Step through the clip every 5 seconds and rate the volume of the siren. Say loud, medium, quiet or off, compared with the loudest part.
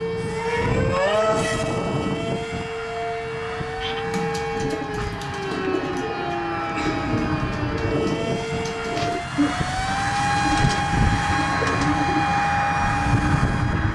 loud, loud, off.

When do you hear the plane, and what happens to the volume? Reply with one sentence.
You can hear the plane from 0.0 to 13.9 s, getting quieter then louder.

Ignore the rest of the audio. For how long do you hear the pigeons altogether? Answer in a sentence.
The pigeons can be heard for 9 seconds in total.